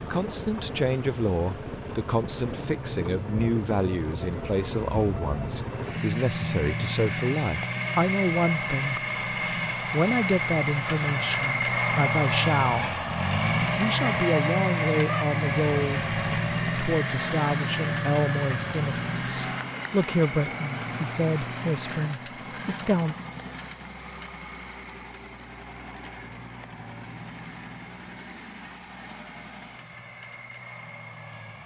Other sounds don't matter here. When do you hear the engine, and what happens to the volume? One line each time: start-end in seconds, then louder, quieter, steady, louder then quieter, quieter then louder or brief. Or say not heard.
0.0-31.6 louder then quieter.